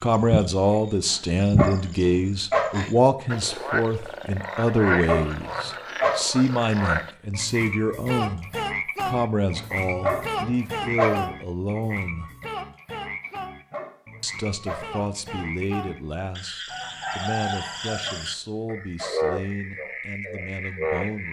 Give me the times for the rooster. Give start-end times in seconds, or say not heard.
16.7-18.1.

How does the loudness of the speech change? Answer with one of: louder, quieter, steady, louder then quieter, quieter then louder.
quieter.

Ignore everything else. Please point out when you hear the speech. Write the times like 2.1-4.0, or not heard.
0.0-12.3, 14.2-21.2.